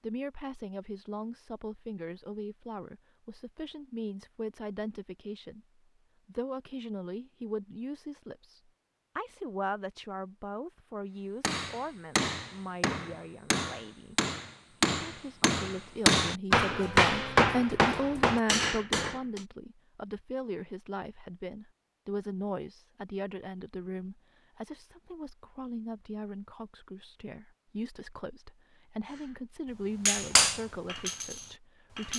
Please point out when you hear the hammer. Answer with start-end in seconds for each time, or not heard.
11.4-19.4, 29.1-32.1.